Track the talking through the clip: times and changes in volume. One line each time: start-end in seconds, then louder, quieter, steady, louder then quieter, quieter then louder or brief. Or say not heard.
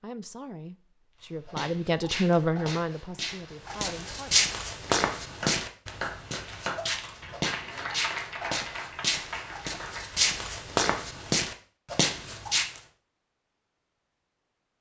0.0-4.3 louder then quieter.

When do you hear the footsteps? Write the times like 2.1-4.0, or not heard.
1.4-12.8.